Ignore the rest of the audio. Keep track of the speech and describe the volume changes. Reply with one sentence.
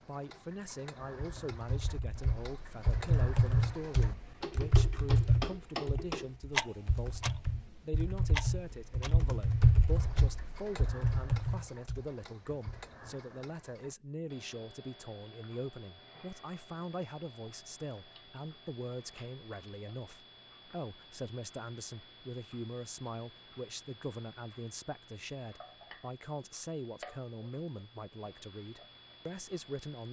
The volume of the speech stays about the same.